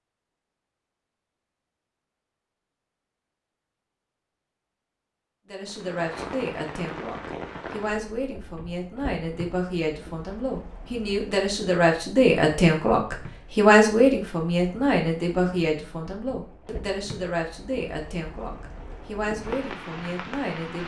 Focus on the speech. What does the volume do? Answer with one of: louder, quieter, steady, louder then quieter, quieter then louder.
louder then quieter.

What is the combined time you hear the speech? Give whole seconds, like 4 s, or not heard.
15 s.